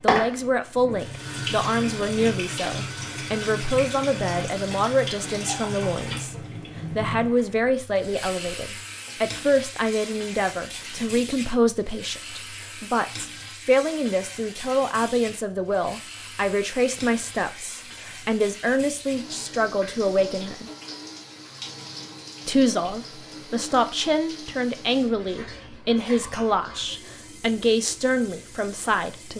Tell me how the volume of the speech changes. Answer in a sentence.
The loudness of the speech stays about the same.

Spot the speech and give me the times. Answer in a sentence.
You can hear the speech from 0.0 to 20.7 s and from 22.4 to 29.3 s.